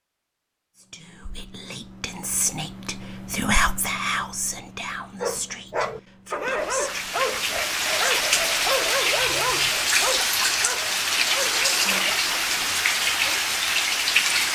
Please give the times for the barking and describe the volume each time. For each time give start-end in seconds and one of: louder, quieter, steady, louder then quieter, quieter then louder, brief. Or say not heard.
5.2-13.3 quieter.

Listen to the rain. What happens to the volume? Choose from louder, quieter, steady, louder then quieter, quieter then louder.
steady.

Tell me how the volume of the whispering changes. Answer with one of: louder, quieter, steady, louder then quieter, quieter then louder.
louder then quieter.